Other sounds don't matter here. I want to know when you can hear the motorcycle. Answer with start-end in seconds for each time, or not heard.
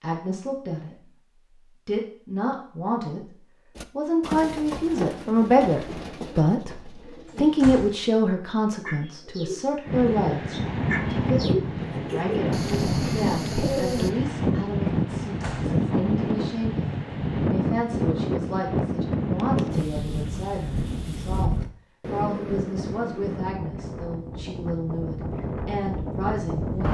not heard.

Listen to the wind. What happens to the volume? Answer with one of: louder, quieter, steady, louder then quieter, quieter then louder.
quieter.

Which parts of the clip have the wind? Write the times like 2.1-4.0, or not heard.
9.8-26.8.